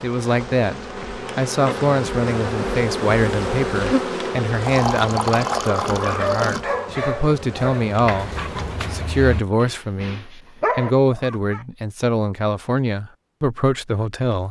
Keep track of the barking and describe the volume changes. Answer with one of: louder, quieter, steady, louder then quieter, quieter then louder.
quieter then louder.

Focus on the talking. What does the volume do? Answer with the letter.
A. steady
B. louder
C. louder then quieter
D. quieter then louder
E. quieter
A.